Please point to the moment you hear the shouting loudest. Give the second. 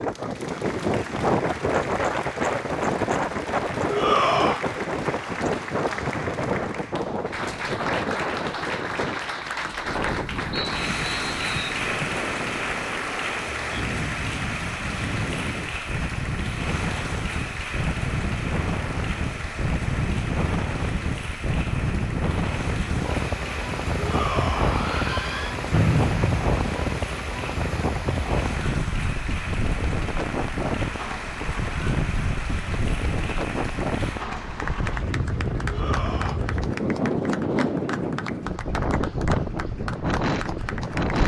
4 s.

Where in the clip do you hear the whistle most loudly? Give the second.
26 s.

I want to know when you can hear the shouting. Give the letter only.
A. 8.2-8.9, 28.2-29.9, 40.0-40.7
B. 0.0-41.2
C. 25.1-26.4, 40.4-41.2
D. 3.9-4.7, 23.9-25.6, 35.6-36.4
D.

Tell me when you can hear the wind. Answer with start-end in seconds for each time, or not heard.
0.0-41.2.